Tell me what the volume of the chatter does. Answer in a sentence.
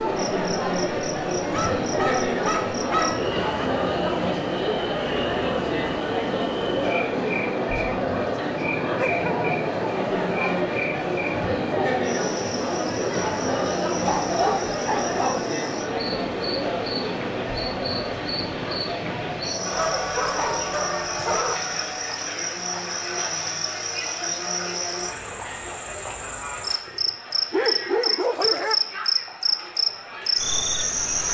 The volume of the chatter goes down.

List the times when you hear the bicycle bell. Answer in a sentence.
The bicycle bell can't be heard in this clip.